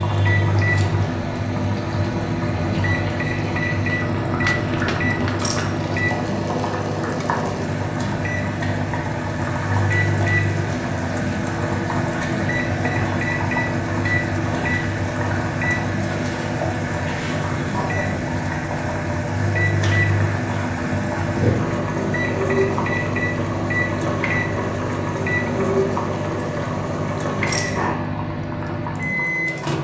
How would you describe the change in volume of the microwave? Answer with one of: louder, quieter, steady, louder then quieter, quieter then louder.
steady.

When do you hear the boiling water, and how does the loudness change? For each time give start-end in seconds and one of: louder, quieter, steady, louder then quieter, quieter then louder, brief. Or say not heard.
0.0-29.8 steady.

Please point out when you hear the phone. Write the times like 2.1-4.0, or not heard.
4.4-5.5.